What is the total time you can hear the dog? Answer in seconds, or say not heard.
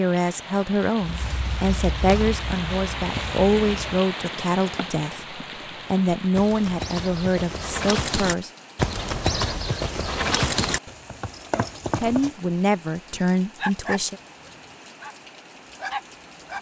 3 s.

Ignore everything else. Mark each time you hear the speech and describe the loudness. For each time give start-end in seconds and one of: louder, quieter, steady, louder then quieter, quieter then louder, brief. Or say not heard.
0.0-8.5 steady
12.0-14.2 brief.